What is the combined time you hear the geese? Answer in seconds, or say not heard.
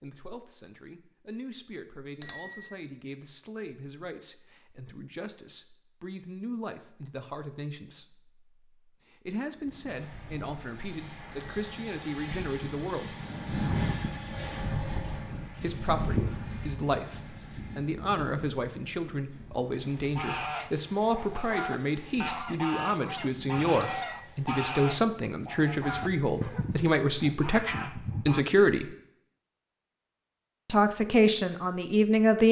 8 s.